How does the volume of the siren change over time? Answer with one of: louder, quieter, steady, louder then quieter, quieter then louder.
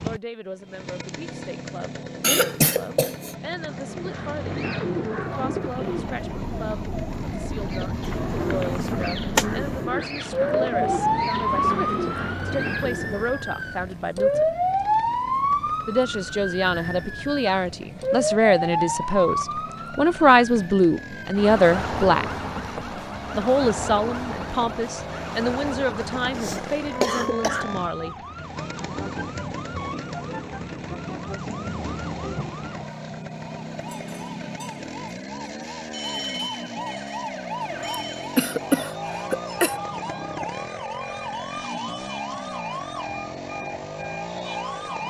quieter.